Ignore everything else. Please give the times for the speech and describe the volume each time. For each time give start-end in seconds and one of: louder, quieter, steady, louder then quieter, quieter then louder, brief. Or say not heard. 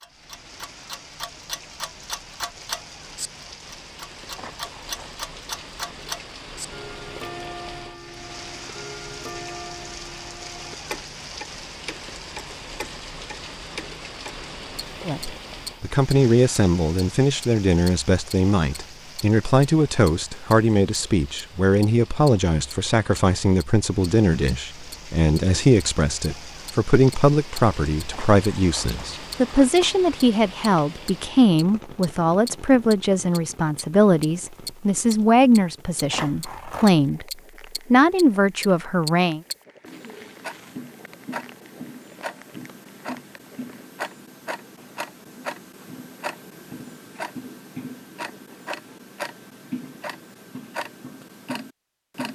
15.1-37.2 steady
37.9-39.4 brief.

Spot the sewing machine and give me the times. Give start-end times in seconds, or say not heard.
not heard.